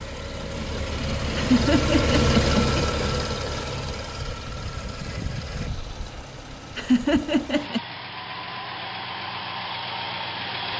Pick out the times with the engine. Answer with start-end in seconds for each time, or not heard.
0.0-10.7.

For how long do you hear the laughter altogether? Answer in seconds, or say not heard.
3 s.